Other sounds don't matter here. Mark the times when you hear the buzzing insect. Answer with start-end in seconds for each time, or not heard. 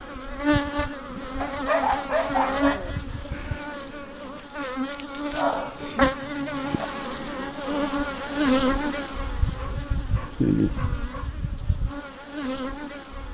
0.0-13.2.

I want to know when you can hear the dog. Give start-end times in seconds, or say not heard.
1.4-3.0, 5.3-6.8, 9.5-11.4.